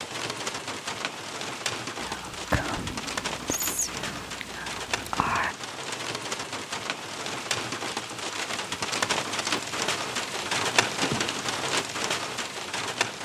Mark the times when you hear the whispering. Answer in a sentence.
You can hear the whispering from 2.0 to 5.5 s.